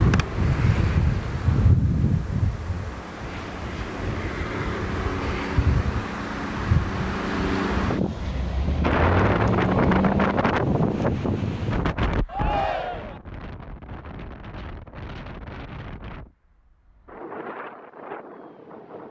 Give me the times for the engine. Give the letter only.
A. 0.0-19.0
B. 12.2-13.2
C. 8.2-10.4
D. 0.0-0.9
C.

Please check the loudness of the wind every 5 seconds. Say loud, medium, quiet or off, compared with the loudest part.
loud, loud, loud, quiet.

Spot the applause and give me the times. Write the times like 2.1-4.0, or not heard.
not heard.